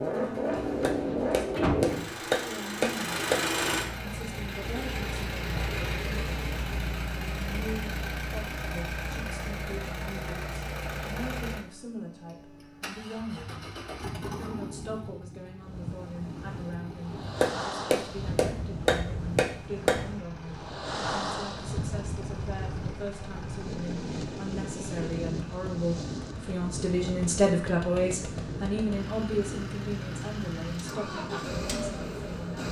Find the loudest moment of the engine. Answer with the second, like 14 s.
1 s.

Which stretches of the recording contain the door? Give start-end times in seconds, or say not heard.
0.8-2.1.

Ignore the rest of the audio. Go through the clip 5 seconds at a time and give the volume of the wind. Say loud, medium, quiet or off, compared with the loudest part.
off, off, off, loud, loud, loud, medium.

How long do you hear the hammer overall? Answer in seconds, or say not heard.
5 s.